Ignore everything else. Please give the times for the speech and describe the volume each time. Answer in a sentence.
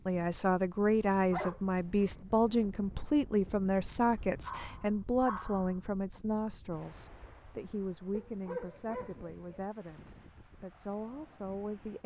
The speech can be heard from 0.1 to 12.0 s, getting quieter.